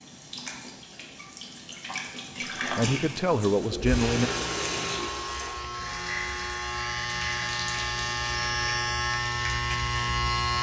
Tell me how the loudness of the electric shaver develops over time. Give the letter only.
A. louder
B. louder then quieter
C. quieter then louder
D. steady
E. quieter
A.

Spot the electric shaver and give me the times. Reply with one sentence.
You can hear the electric shaver from 4.2 to 10.5 s.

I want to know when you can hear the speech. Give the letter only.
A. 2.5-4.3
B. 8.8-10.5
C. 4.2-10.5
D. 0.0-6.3
A.